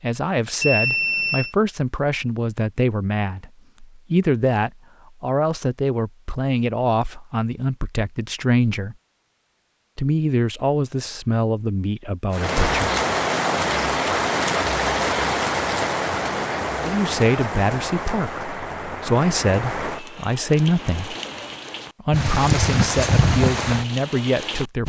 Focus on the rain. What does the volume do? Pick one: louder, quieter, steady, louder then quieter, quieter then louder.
quieter then louder.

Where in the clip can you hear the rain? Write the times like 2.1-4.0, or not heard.
12.3-24.8.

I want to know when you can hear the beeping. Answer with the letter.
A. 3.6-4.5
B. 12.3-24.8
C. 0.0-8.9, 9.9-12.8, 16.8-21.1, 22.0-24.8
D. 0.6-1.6
D.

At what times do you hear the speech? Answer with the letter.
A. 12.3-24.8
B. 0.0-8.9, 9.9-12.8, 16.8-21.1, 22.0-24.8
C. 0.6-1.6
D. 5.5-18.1
B.